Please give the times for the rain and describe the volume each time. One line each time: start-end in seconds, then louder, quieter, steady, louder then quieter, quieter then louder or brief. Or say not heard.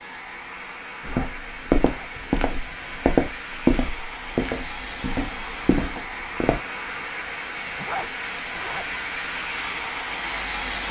0.0-10.8 louder.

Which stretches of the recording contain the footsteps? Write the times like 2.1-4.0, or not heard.
1.1-6.6.